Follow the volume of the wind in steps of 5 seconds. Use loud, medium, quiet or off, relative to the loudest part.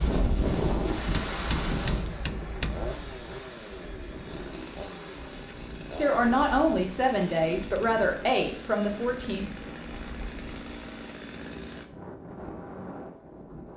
loud, quiet, medium.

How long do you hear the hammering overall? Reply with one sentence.
The hammering can be heard for 2 seconds in total.